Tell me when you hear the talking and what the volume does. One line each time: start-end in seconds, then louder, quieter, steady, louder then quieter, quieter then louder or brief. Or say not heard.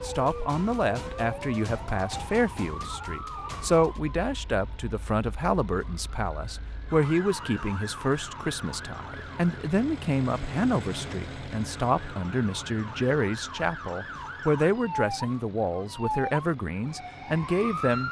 0.0-18.0 steady.